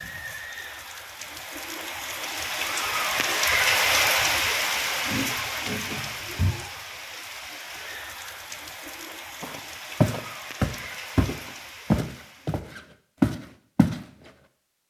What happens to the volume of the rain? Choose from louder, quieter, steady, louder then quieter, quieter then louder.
louder then quieter.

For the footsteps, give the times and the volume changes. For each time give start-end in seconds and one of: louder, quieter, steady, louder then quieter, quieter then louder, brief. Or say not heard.
4.6-6.5 brief
9.4-14.0 quieter then louder.